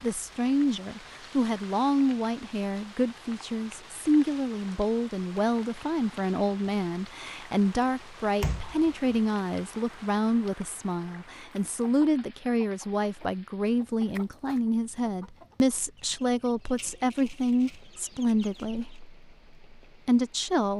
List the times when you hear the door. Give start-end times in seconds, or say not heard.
8.4-9.2.